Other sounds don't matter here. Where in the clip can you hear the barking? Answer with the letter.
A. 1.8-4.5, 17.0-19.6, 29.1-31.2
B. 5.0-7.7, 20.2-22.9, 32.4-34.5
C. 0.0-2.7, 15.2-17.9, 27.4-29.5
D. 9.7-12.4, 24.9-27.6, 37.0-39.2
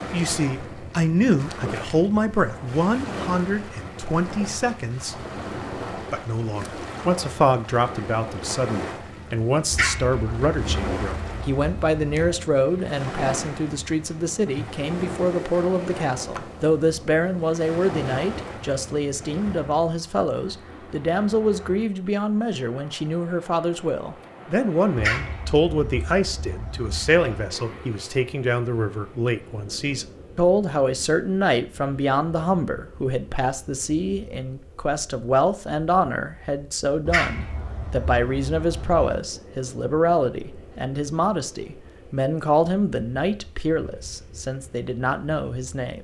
D.